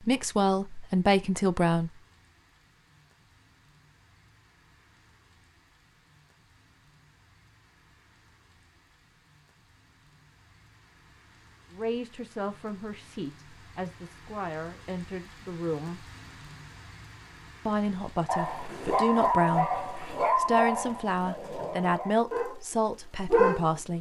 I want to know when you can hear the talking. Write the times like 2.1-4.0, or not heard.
0.1-1.9, 11.7-16.1, 17.6-23.9.